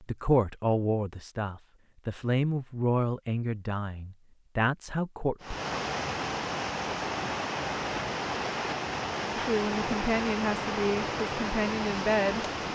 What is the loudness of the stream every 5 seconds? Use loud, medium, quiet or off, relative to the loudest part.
off, loud, loud.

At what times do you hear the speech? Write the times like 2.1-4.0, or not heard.
0.1-5.5, 9.3-12.4.